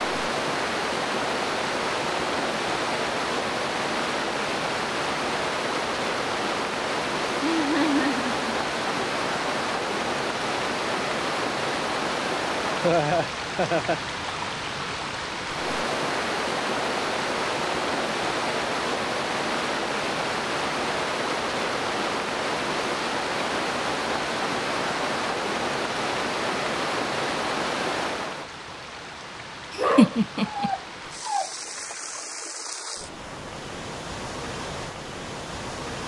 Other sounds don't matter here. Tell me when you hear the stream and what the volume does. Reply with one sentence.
The stream can be heard from 0.0 to 36.0 s, getting quieter.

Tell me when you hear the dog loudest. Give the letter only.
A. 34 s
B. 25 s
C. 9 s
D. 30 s
D.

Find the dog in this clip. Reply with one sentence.
The dog can be heard from 29.8 to 31.5 s.